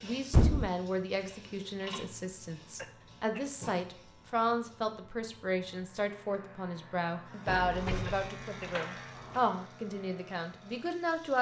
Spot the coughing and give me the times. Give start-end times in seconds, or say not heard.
2.8-3.5, 8.1-8.8.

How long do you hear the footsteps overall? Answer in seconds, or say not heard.
not heard.